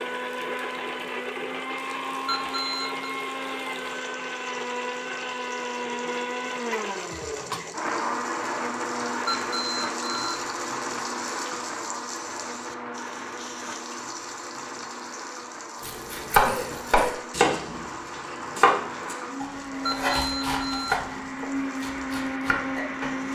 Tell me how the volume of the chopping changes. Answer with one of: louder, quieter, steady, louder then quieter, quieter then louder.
quieter.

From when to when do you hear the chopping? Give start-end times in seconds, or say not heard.
15.8-23.2.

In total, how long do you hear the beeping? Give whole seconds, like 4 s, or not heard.
3 s.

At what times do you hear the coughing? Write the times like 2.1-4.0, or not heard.
6.7-7.7, 16.4-17.2.